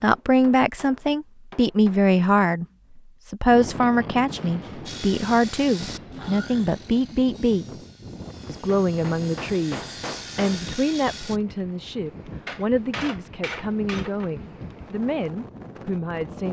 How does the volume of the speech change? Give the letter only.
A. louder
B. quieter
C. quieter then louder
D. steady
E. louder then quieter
B.